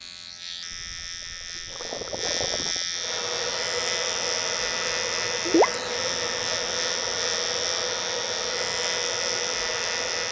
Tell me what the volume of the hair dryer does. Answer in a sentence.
The volume of the hair dryer stays about the same.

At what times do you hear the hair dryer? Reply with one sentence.
You can hear the hair dryer from 2.9 to 10.2 s.